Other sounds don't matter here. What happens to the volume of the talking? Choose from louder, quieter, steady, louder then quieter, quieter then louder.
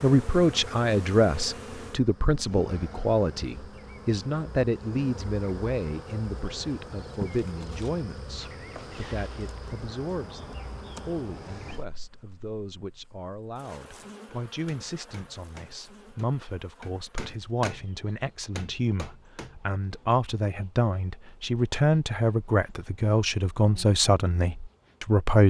quieter then louder.